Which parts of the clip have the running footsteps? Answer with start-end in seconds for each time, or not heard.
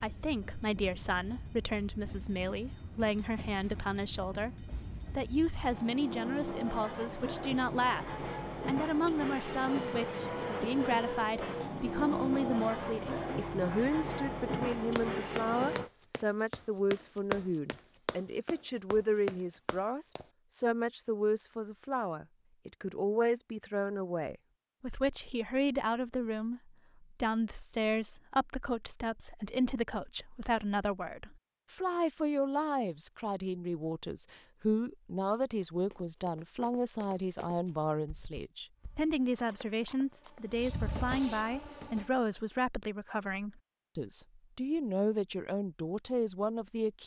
14.9-20.2, 35.3-40.8.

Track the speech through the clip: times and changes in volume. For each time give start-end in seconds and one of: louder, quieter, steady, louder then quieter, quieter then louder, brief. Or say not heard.
0.0-47.0 steady.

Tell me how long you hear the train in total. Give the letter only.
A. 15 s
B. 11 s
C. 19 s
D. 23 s
C.